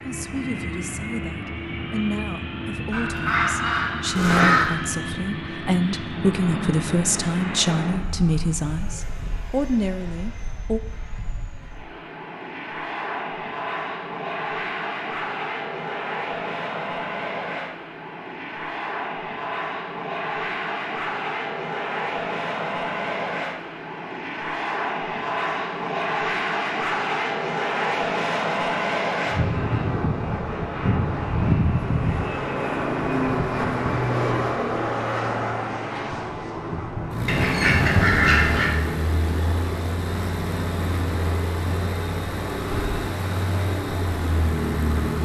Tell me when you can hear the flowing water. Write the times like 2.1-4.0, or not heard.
not heard.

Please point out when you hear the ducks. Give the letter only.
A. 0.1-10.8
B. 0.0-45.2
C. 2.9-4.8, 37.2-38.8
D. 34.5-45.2
C.